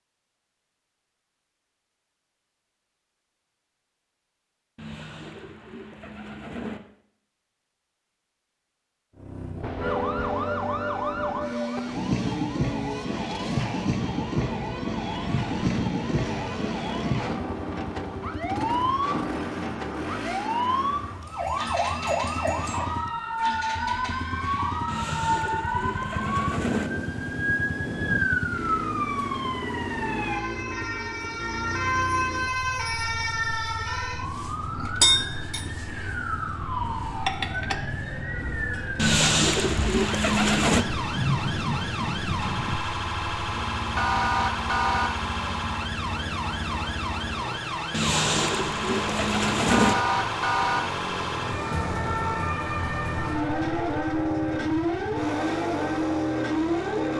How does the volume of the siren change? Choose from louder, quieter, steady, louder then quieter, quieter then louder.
steady.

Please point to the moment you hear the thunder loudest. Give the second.
41 s.